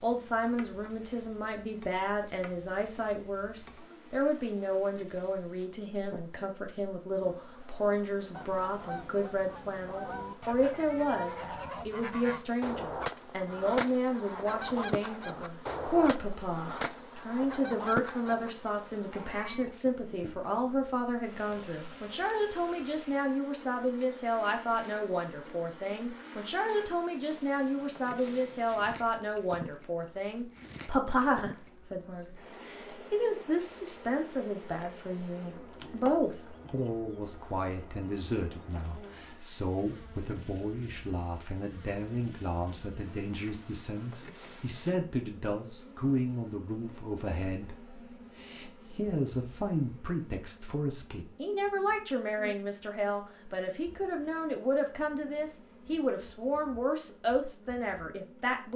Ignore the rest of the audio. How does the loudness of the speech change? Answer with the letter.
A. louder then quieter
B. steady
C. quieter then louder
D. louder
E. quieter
B.